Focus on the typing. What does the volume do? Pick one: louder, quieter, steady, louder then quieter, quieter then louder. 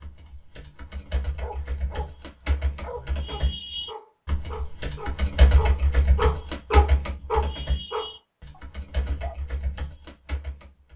louder then quieter.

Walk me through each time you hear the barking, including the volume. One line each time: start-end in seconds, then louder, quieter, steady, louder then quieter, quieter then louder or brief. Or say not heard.
1.4-2.1 brief
2.8-9.3 louder then quieter.